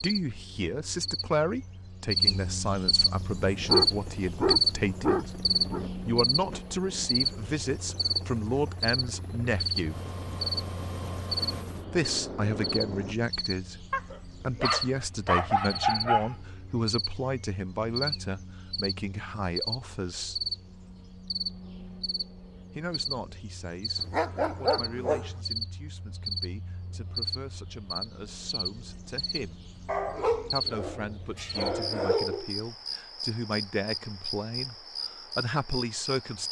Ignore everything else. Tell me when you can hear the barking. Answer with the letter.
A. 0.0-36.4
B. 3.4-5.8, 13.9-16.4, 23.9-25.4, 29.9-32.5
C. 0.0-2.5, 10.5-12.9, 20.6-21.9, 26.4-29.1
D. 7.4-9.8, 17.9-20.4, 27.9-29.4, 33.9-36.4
B.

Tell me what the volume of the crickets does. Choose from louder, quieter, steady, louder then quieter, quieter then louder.
quieter.